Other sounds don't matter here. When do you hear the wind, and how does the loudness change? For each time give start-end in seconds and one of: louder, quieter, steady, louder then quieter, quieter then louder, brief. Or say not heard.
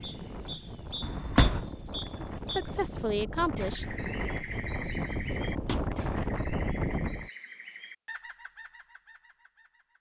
0.0-7.3 louder.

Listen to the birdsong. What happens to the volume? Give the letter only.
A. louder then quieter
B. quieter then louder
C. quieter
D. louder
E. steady
C.